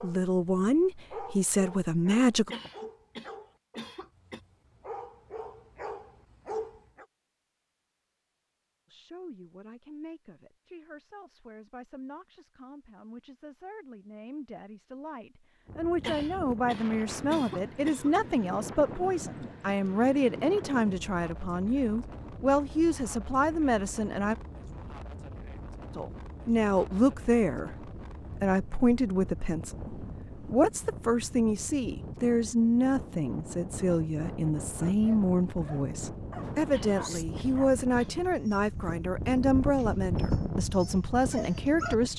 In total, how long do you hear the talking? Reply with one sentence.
You can hear the talking for 34 seconds altogether.